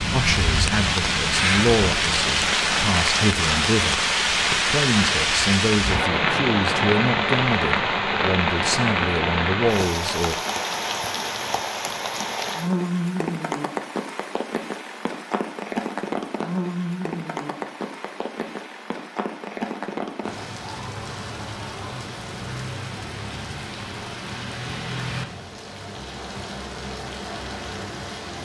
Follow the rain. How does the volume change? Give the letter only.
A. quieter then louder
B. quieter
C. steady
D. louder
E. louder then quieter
B.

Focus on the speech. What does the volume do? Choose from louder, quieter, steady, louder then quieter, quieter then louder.
steady.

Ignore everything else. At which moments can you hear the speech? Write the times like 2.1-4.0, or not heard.
0.0-10.4.